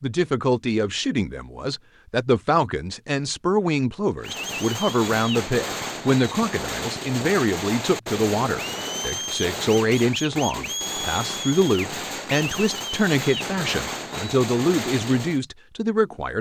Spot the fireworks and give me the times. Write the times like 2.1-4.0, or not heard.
4.2-15.4.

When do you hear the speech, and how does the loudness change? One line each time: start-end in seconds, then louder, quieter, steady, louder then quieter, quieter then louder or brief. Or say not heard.
0.0-16.3 steady.